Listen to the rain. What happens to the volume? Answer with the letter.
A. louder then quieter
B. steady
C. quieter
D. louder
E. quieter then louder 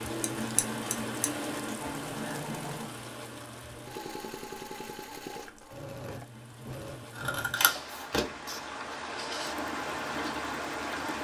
E.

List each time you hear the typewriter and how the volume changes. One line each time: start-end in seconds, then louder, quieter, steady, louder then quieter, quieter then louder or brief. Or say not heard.
not heard.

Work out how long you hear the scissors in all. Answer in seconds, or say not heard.
3 s.